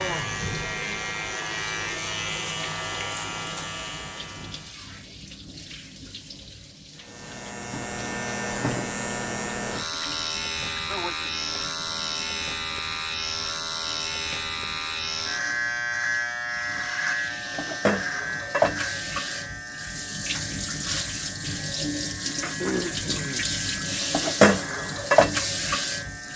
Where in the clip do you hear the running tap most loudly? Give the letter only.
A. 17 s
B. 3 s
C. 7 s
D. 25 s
D.